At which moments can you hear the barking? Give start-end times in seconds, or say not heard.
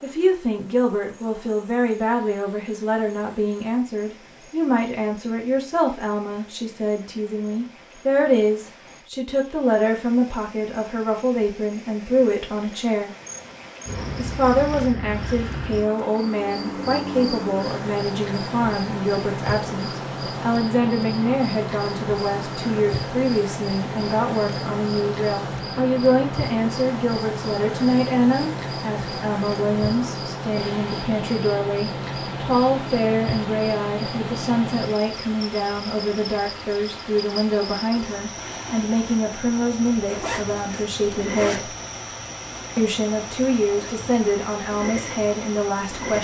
not heard.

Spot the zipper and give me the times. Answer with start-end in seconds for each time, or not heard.
40.0-41.6.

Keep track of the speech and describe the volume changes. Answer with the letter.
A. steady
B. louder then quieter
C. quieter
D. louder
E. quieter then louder
A.